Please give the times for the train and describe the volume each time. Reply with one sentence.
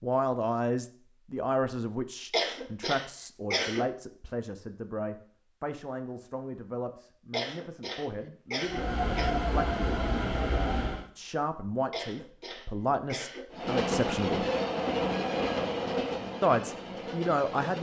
The train can be heard briefly from 8.7 to 11.1 s; and from 13.5 to 17.7 s, getting quieter.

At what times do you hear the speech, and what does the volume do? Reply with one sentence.
You can hear the speech from 0.0 to 14.4 s, getting quieter then louder; and briefly from 16.4 to 17.7 s.